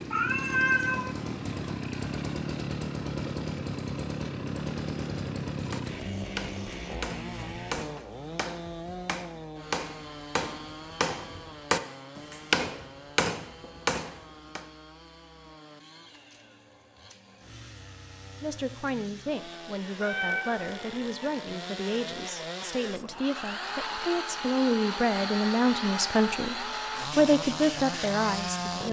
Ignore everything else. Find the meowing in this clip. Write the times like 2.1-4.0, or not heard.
0.1-1.1, 20.0-21.1.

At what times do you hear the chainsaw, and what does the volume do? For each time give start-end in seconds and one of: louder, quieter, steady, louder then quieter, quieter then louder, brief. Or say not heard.
0.0-28.8 quieter then louder.